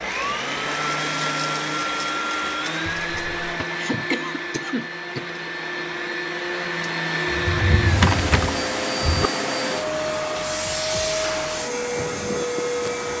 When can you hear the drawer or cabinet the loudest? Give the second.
8 s.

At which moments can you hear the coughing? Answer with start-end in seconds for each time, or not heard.
3.6-5.2.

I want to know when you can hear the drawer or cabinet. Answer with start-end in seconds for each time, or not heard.
3.1-3.6, 7.2-9.3.